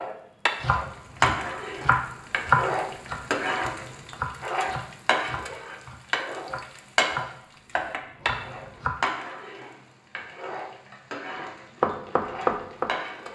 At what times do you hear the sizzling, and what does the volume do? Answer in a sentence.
The sizzling can be heard from 0.0 to 13.3 s, getting quieter.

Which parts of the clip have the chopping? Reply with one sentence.
You can hear the chopping from 0.6 to 8.9 s and from 11.3 to 13.3 s.